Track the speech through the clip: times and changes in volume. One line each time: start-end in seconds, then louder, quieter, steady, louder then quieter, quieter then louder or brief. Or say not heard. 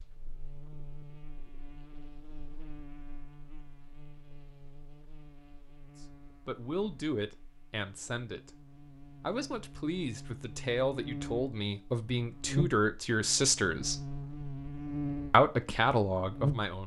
6.5-8.5 brief
9.2-13.9 louder
15.3-16.8 brief.